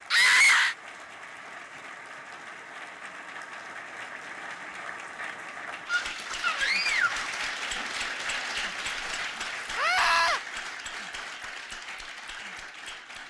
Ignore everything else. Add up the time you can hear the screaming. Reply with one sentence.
You can hear the screaming for 3 seconds altogether.